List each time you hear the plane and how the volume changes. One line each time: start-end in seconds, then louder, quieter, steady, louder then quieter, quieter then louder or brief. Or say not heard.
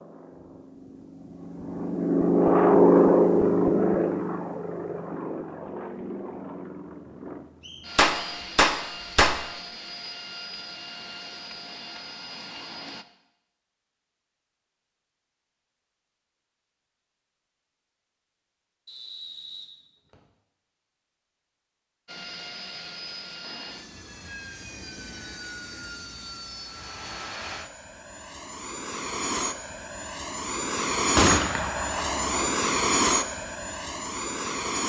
0.0-13.1 quieter
22.1-34.8 louder.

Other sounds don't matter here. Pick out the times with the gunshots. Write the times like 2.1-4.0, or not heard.
8.0-9.4, 31.1-32.5.